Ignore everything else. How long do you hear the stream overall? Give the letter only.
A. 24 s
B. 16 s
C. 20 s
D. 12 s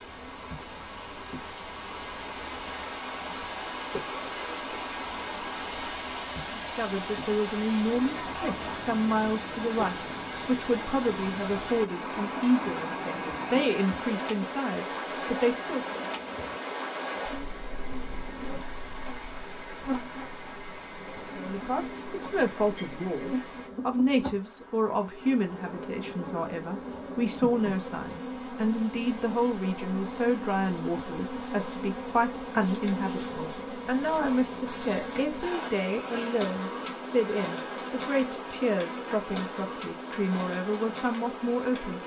A.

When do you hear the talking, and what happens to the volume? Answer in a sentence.
You can hear the talking from 6.5 to 15.9 s, at a steady volume; and from 21.4 to 42.0 s, at a steady volume.